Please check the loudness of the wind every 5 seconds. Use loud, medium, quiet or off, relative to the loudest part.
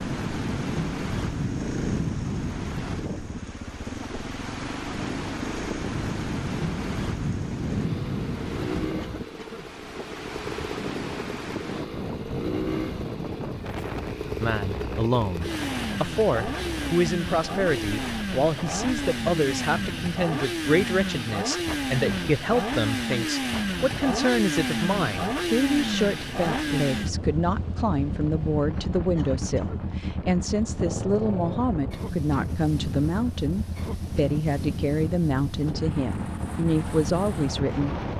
loud, loud, loud, medium, medium, medium, medium, loud.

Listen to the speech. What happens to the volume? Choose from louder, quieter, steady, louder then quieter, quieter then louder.
steady.